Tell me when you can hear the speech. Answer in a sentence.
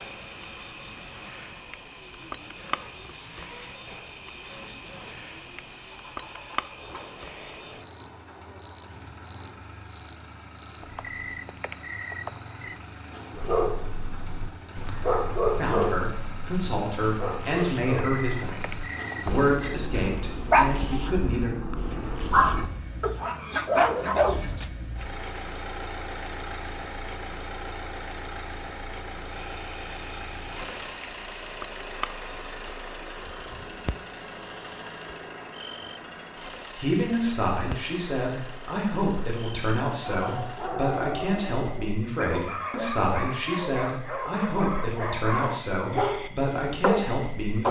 The speech can be heard from 15.6 to 21.5 s and from 36.8 to 47.6 s.